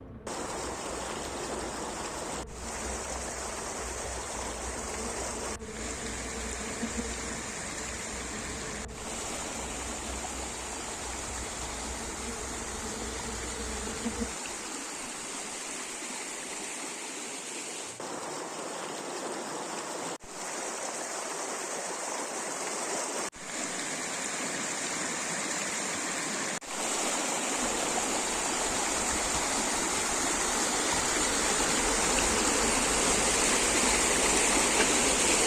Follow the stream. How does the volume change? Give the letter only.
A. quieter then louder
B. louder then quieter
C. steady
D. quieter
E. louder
E.